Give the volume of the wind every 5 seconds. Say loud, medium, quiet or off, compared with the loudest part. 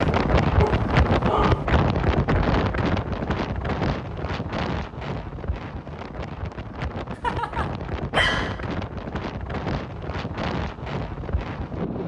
loud, medium, medium.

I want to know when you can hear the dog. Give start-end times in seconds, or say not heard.
0.6-1.6, 7.2-8.6.